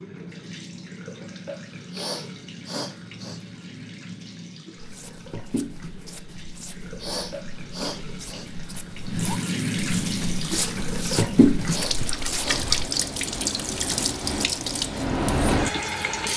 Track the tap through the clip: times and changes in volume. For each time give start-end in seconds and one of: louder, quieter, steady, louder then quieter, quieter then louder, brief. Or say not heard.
0.0-16.3 louder.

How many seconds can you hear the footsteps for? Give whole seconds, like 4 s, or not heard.
8 s.